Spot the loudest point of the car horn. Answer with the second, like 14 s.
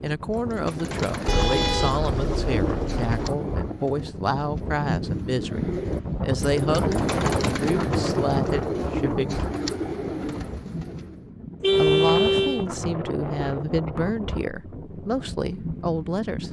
12 s.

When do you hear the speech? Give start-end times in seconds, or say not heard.
0.0-9.4, 11.8-16.4.